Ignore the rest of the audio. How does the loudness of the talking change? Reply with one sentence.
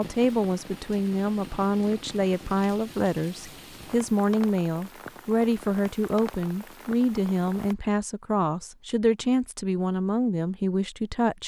The volume of the talking stays about the same.